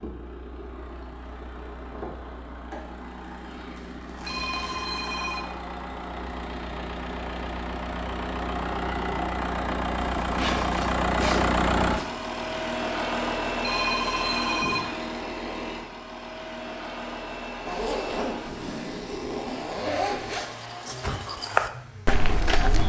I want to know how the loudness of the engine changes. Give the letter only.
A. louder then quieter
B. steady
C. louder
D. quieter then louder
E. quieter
A.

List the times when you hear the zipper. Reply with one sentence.
You can hear the zipper from 3.8 to 4.8 s, from 10.2 to 12.1 s and from 17.6 to 20.4 s.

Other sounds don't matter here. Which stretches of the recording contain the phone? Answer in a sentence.
The phone can be heard from 4.2 to 5.5 s and from 13.6 to 14.9 s.